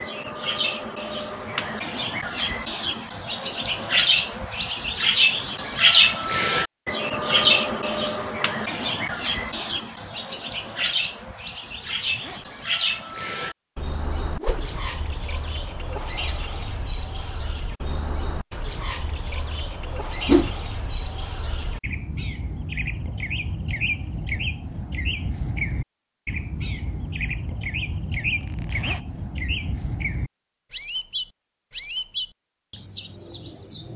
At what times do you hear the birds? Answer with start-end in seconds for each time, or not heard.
0.0-33.9.